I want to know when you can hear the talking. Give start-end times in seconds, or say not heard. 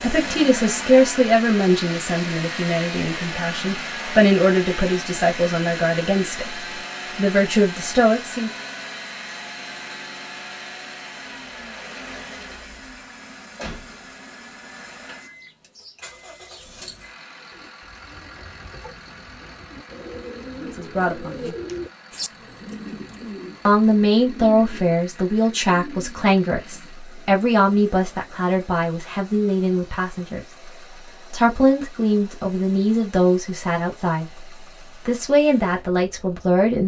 0.0-6.5, 7.2-8.5, 20.8-21.6, 23.6-30.4, 31.3-34.5, 35.0-36.8.